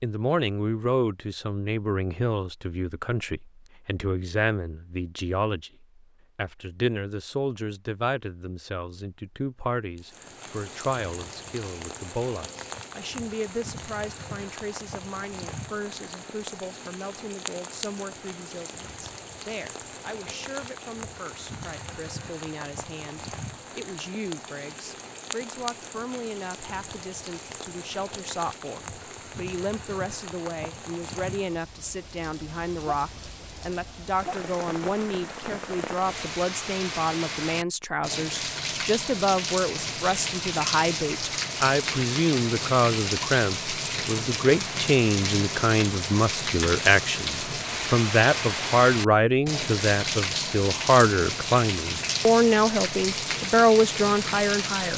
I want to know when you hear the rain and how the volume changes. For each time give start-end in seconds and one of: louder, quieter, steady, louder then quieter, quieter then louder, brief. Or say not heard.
9.9-54.9 louder.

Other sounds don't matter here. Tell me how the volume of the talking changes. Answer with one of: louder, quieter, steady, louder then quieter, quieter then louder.
quieter then louder.